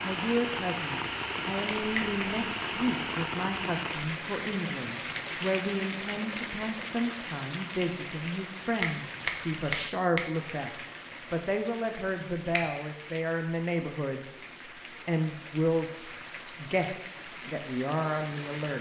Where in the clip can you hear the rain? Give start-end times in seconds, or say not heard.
0.0-18.7.